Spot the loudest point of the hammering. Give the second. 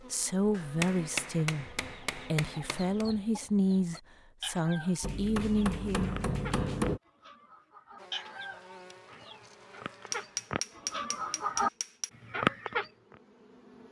7 s.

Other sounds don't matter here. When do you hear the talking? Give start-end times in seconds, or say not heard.
0.1-6.2.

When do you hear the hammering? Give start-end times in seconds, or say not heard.
0.5-3.0, 5.0-7.0, 10.1-12.1.